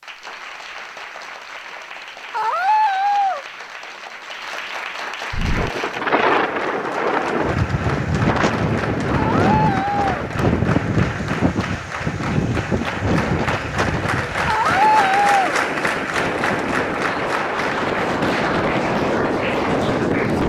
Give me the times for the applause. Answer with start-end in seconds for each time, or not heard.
0.0-20.4.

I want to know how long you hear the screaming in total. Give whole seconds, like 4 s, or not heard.
3 s.